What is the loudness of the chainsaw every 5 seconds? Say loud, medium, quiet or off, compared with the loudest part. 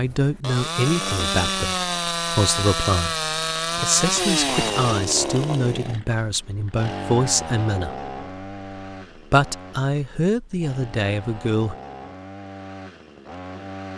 loud, medium, quiet.